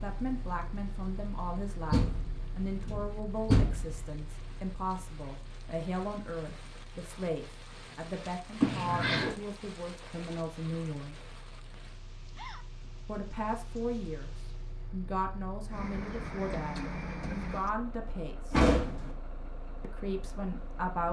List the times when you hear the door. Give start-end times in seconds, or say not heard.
1.9-4.0, 8.6-9.3, 18.5-19.1.